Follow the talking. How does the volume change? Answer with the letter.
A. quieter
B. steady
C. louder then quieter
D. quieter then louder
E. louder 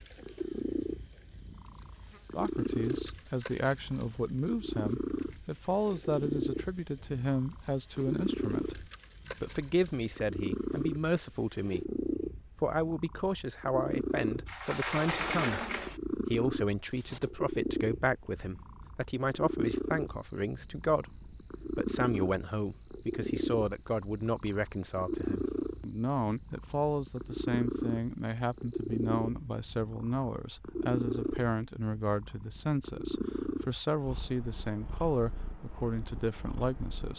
B.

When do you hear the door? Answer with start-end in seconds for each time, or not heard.
14.4-16.0.